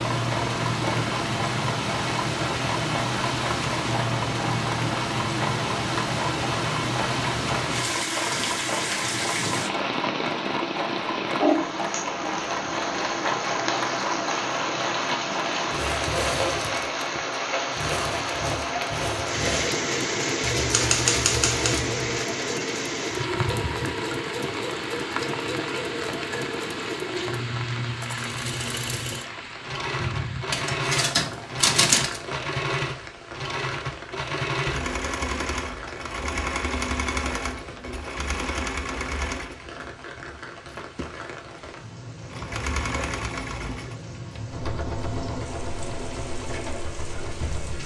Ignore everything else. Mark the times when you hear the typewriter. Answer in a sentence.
You can hear the typewriter from 20.4 to 22.2 s and from 30.5 to 32.2 s.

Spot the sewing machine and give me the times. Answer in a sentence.
The sewing machine can be heard from 0.0 to 47.8 s.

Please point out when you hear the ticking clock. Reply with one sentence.
You can't hear the ticking clock here.